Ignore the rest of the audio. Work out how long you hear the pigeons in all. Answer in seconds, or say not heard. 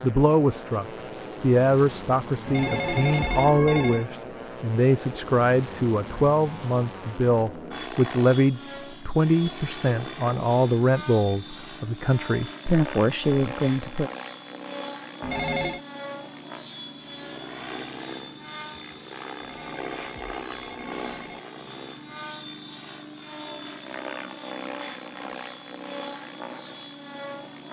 not heard.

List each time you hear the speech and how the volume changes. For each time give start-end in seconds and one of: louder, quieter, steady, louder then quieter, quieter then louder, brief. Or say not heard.
0.0-14.1 steady.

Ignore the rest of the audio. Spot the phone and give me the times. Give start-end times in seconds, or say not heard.
2.5-4.0, 15.2-15.8, 19.4-21.4.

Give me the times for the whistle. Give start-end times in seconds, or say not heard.
not heard.